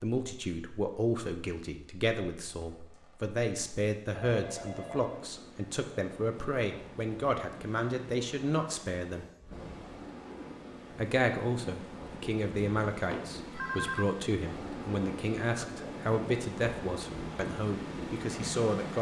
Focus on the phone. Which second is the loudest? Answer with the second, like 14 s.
14 s.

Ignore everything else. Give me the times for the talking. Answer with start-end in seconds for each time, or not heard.
0.0-9.3, 10.9-18.9.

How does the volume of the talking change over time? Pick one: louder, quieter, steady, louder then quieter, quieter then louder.
steady.